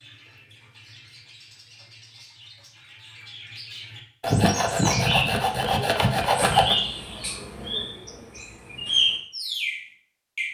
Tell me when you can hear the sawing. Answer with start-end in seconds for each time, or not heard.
4.2-6.8.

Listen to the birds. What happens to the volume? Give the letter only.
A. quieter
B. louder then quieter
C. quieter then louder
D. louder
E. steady
D.